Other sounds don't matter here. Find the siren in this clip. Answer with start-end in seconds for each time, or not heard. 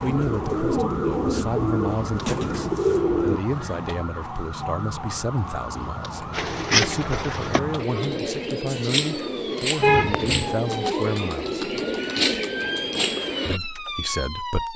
0.0-14.7.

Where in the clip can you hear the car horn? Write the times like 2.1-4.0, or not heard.
9.8-10.5.